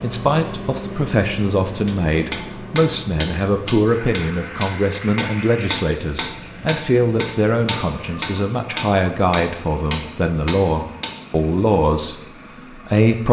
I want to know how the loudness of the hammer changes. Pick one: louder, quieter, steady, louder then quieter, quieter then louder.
steady.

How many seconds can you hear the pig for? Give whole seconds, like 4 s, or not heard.
not heard.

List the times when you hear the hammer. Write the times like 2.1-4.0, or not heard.
1.9-11.2.